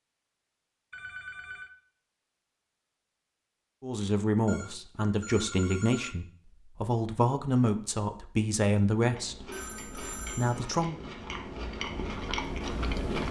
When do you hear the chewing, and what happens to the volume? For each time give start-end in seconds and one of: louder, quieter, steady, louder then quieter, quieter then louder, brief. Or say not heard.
9.1-13.2 louder.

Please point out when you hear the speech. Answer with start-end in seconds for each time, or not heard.
3.8-10.9.